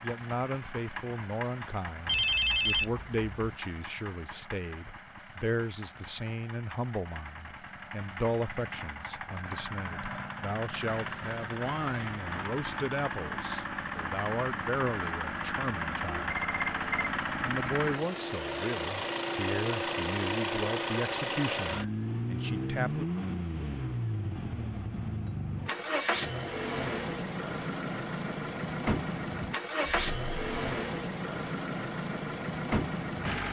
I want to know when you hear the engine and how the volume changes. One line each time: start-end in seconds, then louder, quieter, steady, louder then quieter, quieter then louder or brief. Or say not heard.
0.0-33.4 louder.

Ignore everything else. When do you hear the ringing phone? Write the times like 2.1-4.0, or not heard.
2.0-3.5, 16.3-16.9, 29.8-30.9.